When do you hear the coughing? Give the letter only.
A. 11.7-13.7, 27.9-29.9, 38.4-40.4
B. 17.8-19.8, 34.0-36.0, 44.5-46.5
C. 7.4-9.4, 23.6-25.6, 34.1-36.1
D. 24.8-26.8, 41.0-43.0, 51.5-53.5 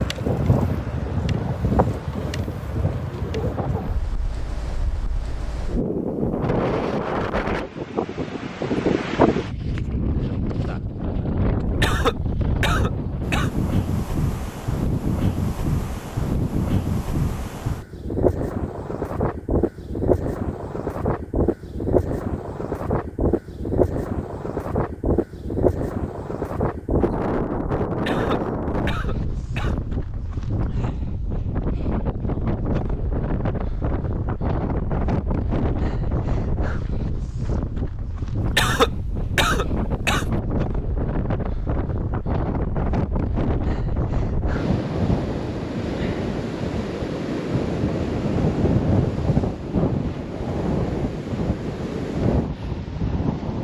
A.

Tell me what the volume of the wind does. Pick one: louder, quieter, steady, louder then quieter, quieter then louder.
steady.